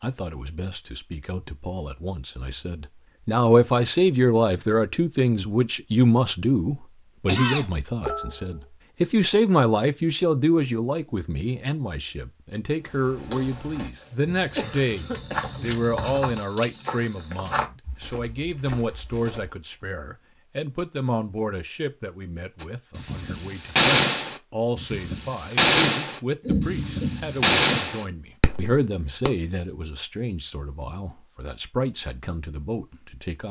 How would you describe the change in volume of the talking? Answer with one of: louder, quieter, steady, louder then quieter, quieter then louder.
quieter.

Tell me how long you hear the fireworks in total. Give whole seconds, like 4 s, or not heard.
7 s.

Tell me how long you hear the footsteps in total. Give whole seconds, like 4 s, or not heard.
7 s.